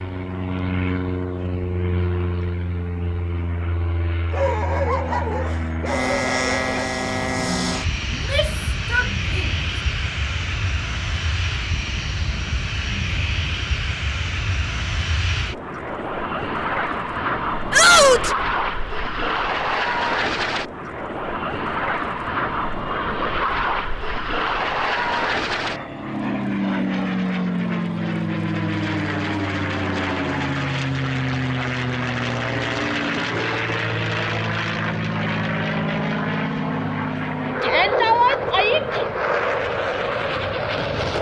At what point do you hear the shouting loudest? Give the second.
18 s.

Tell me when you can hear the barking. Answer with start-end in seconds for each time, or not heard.
4.3-6.8.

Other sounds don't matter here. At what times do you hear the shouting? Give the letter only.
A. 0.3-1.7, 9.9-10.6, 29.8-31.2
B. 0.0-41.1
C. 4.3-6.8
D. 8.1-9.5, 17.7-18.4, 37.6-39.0
D.